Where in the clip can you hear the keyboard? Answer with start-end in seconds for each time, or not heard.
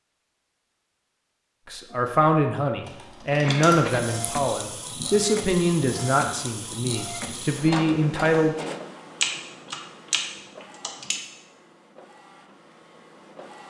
2.9-4.0, 9.2-11.2.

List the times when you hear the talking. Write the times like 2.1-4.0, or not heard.
1.6-8.6.